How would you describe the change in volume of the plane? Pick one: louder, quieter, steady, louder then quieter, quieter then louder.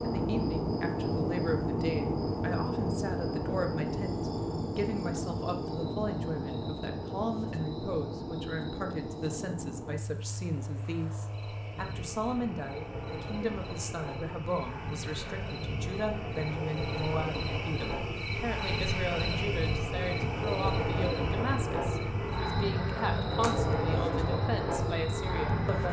quieter then louder.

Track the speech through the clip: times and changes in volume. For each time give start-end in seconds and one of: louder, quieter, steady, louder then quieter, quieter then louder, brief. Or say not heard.
0.0-25.8 steady.